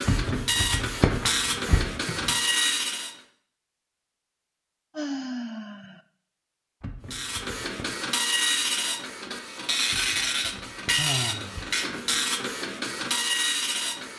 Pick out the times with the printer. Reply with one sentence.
You can hear the printer from 0.0 to 3.1 s and from 7.1 to 14.1 s.